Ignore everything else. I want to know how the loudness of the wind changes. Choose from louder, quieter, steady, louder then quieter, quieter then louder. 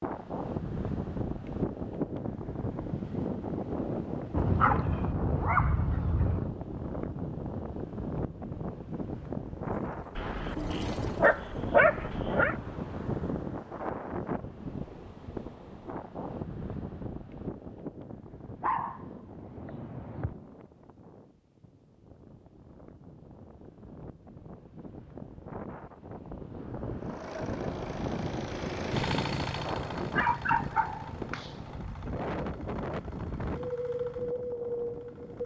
quieter then louder.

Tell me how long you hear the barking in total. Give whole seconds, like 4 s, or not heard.
8 s.